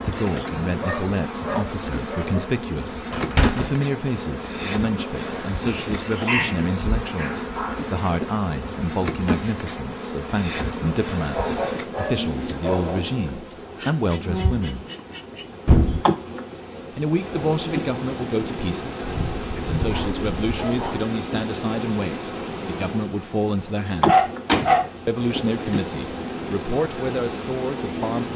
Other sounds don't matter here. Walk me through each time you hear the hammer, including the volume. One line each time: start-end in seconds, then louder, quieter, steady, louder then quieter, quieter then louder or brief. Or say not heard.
not heard.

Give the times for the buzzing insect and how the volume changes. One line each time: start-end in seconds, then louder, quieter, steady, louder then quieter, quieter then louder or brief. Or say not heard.
0.0-28.3 steady.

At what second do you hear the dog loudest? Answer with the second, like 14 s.
24 s.